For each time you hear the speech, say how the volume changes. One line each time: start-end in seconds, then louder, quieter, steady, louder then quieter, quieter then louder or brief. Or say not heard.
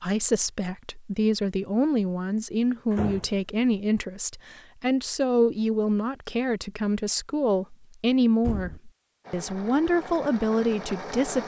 0.0-11.4 steady.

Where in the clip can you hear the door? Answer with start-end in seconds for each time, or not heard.
2.9-3.4, 8.4-8.8.